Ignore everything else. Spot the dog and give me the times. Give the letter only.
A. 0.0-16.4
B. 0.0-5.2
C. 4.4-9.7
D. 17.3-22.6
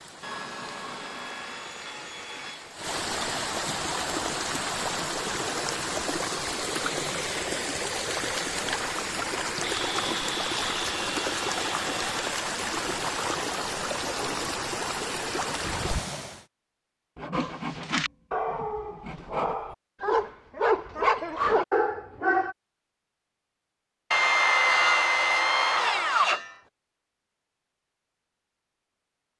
D.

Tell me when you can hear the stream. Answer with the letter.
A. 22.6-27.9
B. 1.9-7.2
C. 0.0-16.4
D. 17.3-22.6
C.